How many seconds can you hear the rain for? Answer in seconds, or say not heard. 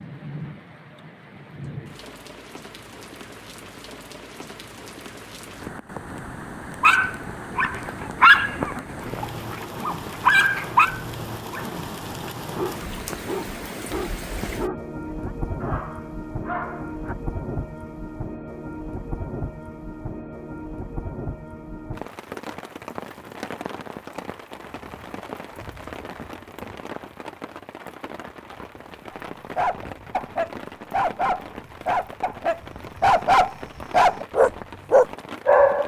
36 s.